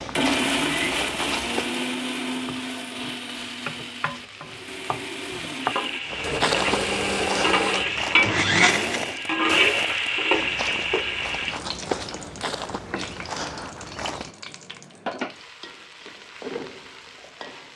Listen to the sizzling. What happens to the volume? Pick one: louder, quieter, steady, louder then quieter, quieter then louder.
louder then quieter.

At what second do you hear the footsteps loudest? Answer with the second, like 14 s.
7 s.